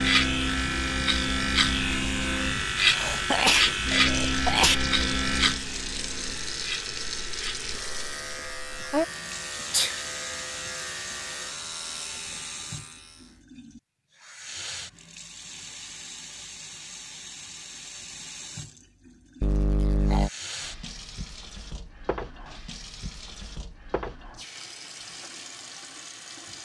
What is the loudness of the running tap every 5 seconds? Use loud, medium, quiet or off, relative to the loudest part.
loud, loud, medium, medium, medium, medium.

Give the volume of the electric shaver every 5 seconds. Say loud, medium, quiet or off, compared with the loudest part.
loud, medium, quiet, off, off, off.